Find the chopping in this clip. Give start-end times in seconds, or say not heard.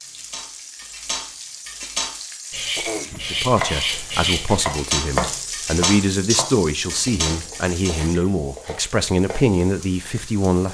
3.4-9.5.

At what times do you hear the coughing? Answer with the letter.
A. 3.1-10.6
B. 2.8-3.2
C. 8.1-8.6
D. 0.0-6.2
B.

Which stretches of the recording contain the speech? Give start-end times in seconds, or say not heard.
3.1-10.6.